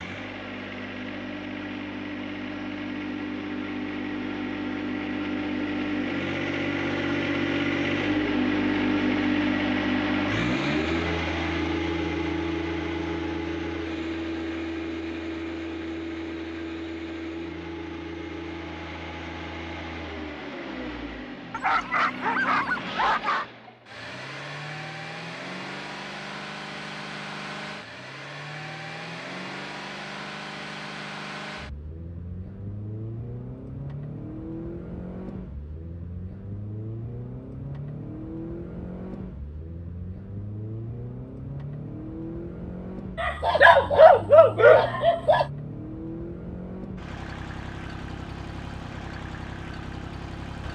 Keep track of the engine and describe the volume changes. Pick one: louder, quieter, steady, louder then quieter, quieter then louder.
quieter.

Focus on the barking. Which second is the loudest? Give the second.
44 s.